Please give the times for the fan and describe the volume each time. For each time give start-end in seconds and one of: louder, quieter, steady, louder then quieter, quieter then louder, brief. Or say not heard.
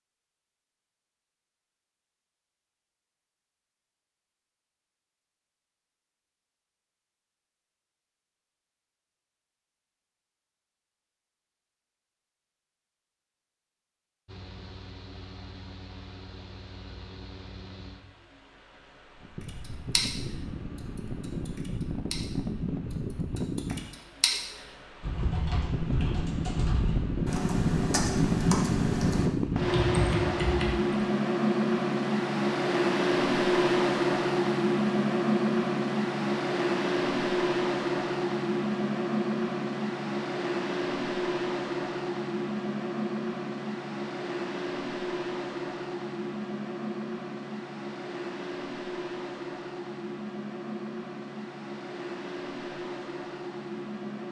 14.2-54.2 louder then quieter.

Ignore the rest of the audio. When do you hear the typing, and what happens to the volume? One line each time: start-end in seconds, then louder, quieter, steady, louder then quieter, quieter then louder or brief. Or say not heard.
19.4-30.8 quieter then louder.